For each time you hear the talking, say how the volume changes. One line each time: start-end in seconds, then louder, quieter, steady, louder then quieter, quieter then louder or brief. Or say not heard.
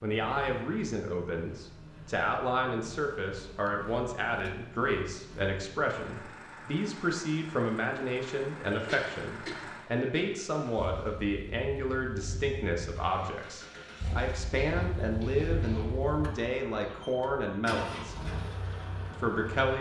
0.0-18.1 steady
19.2-19.7 brief.